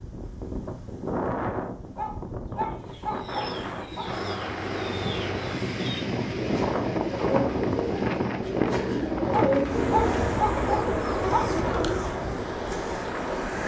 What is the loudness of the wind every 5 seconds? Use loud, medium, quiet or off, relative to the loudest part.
medium, loud, loud.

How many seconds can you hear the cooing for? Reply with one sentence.
You can hear the cooing for 9 seconds altogether.